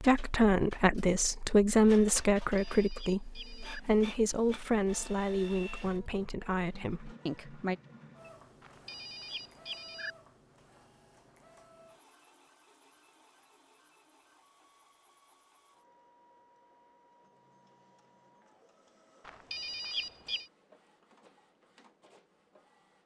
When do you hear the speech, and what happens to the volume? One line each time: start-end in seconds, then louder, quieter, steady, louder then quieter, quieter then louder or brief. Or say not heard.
0.0-7.8 quieter.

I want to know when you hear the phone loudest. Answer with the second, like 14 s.
20 s.